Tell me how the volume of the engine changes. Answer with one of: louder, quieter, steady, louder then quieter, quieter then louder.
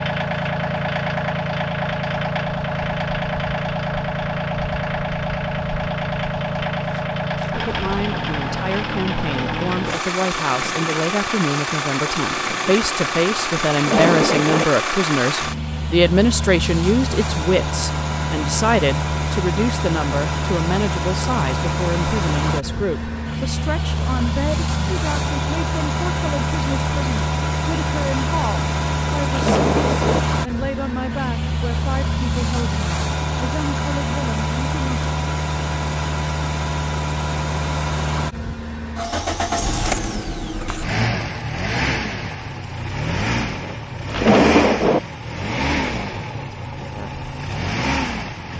steady.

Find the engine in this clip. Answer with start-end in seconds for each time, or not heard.
0.0-48.5.